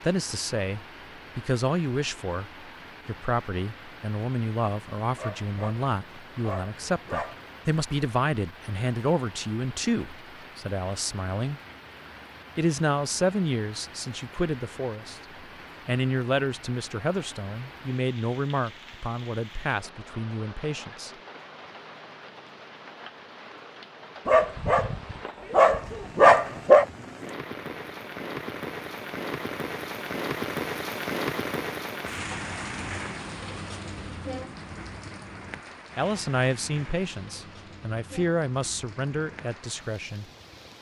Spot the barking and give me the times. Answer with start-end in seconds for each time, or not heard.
5.2-7.4, 24.2-26.9.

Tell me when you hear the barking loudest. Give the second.
26 s.